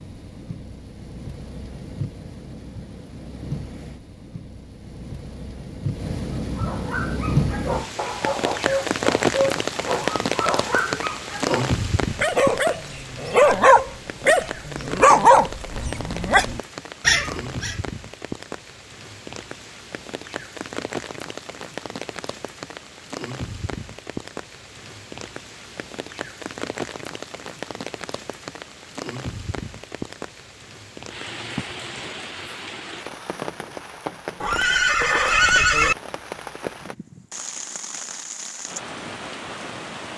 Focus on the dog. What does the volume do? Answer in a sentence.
The loudness of the dog goes up.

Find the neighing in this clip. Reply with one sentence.
You can hear the neighing from 34.4 to 36.0 s.